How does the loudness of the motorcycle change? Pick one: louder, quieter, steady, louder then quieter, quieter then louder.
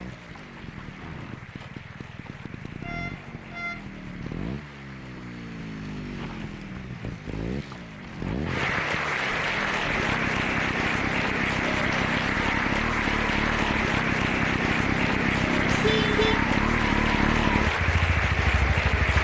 louder.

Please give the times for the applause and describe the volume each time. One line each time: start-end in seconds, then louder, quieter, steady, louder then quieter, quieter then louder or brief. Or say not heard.
0.0-19.1 louder.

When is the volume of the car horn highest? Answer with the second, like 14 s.
16 s.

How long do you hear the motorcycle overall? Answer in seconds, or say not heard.
19 s.